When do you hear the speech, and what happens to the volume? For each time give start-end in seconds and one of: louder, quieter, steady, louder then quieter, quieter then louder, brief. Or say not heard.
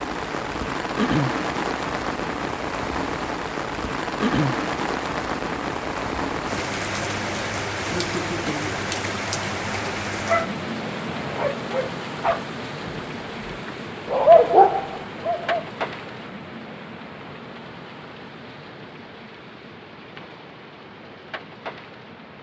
not heard.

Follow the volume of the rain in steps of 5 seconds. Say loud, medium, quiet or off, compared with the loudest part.
loud, loud, medium, medium, quiet.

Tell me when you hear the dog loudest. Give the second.
14 s.